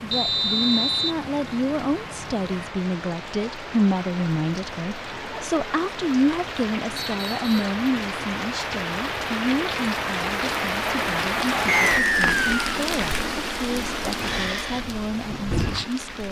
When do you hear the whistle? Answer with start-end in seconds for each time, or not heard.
0.1-1.1, 7.0-7.7, 11.7-12.6.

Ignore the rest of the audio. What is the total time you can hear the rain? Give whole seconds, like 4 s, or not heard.
16 s.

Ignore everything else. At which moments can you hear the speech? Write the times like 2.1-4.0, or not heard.
0.0-16.2.